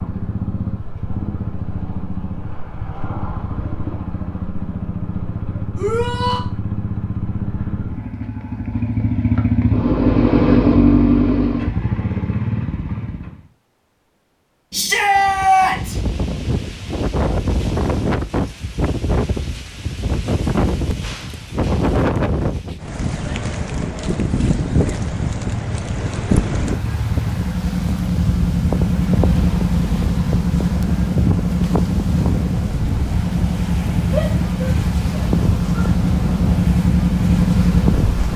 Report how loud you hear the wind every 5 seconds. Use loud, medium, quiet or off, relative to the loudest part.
off, off, off, loud, loud, loud, loud, loud.